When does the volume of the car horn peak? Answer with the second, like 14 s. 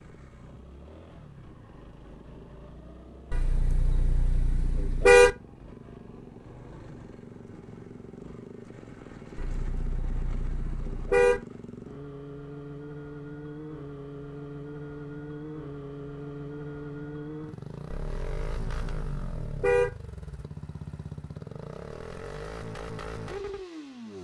5 s.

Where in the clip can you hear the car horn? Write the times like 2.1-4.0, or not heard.
3.3-5.3, 9.3-11.4, 17.9-19.9.